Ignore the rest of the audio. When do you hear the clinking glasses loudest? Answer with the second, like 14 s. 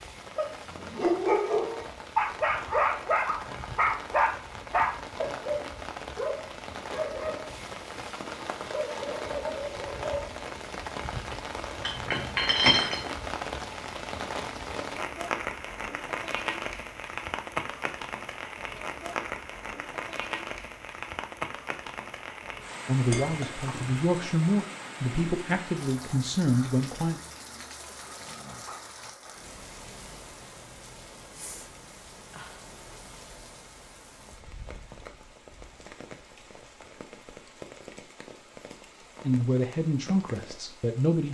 13 s.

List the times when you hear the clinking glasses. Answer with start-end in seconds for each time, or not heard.
11.8-13.0, 23.1-24.0.